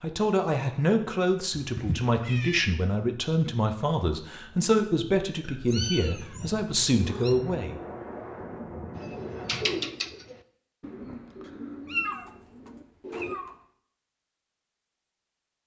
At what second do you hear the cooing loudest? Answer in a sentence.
The loudest moment of the cooing is at 10 seconds.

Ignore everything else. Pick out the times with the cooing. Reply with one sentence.
You can hear the cooing from 8.9 to 13.3 s.